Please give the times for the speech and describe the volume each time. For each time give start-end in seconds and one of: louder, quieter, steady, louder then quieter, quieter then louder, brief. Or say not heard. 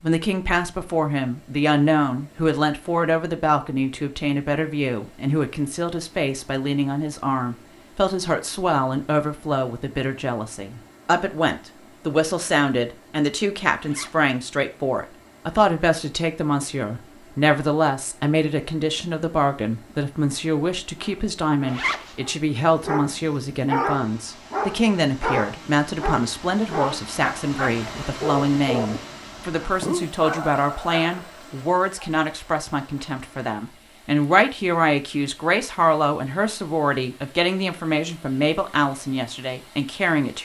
0.0-40.3 steady.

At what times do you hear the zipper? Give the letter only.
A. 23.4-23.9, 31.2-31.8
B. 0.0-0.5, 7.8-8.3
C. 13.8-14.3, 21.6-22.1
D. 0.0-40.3
C.